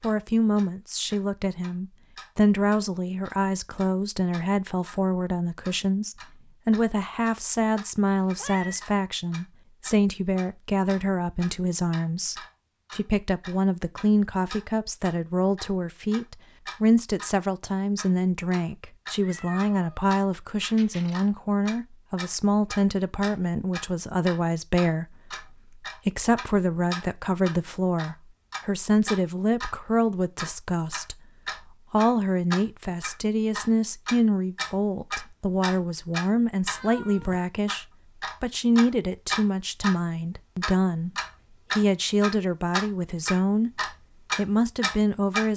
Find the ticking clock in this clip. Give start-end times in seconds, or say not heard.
0.0-5.0, 5.6-17.4, 17.9-29.8, 30.4-36.8, 37.6-40.0, 40.6-45.5.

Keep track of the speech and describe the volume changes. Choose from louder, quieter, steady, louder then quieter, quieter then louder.
steady.